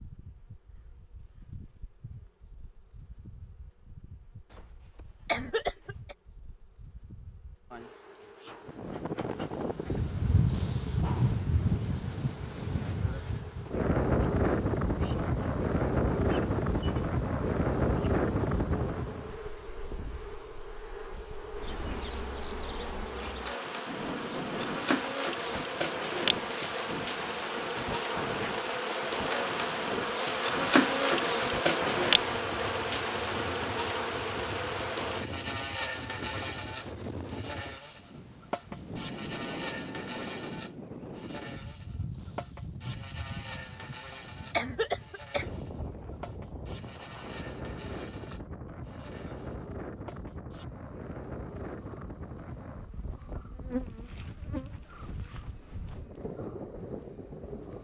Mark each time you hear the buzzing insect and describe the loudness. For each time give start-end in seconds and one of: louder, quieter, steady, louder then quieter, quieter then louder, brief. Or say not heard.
0.0-57.7 louder then quieter.